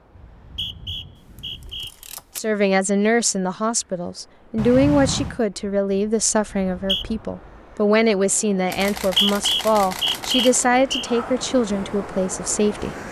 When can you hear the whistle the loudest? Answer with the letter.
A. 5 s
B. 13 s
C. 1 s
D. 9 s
D.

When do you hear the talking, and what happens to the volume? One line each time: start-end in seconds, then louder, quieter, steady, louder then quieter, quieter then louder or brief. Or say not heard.
2.4-12.9 steady.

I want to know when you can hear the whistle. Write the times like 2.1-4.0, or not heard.
0.1-1.9, 6.5-7.0, 8.8-11.1.